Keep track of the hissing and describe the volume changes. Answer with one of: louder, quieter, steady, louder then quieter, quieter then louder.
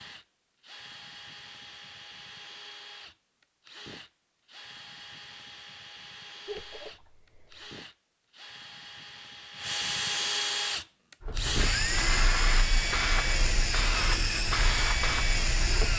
steady.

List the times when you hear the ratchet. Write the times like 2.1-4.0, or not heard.
not heard.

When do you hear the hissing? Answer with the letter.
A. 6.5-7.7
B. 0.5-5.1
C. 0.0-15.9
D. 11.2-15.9
D.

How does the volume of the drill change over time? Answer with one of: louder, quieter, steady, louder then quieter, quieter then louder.
louder.